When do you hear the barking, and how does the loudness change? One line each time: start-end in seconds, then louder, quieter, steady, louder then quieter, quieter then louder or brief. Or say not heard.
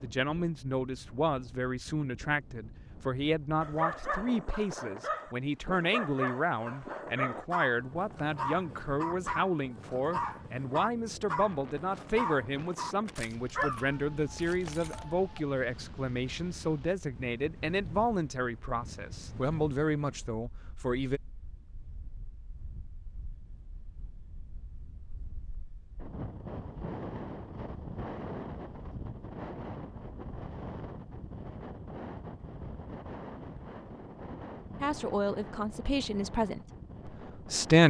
3.6-15.3 steady.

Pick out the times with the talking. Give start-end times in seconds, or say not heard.
0.0-21.2, 34.8-37.8.